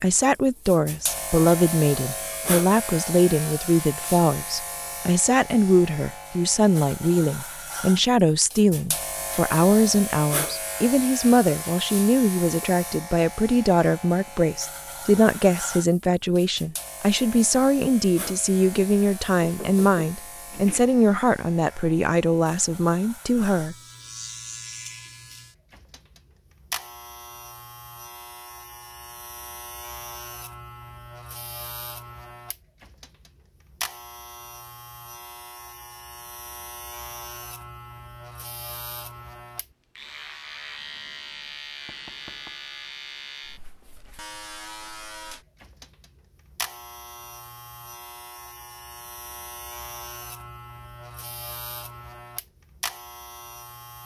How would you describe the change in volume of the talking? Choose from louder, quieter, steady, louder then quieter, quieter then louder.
steady.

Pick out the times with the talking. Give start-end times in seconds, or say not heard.
0.0-23.8.